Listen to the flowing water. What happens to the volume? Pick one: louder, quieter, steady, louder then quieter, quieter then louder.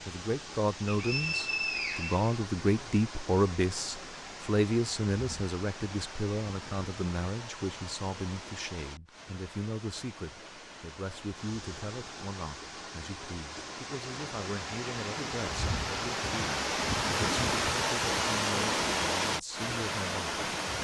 louder.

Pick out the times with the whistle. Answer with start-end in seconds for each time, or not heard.
0.8-2.4.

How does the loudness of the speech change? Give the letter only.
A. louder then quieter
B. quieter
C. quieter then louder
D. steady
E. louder
B.